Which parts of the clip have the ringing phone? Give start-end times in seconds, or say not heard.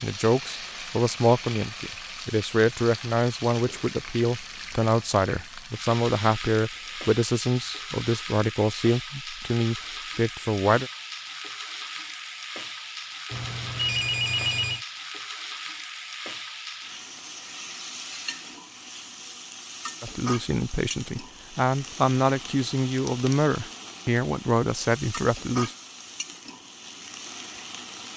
13.3-14.8.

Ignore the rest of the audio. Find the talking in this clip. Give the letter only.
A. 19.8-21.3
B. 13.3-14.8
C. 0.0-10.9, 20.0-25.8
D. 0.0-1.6
C.